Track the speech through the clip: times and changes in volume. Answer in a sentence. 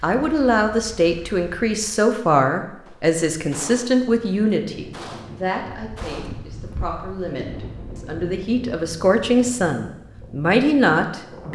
The speech can be heard from 0.0 to 11.4 s, getting quieter then louder.